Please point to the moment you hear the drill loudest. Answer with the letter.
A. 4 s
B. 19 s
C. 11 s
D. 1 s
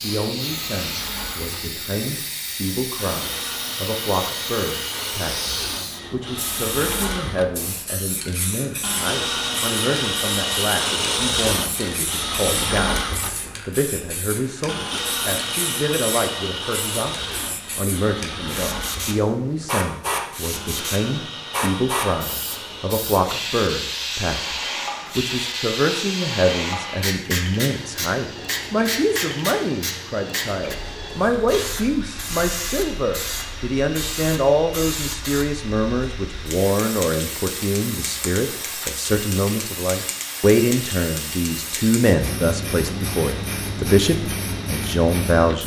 C.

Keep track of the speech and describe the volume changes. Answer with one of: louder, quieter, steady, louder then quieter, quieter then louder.
louder.